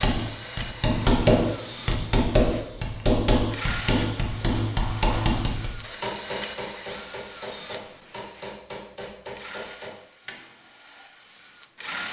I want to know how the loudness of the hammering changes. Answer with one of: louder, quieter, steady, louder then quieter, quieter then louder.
quieter.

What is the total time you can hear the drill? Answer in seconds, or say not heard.
12 s.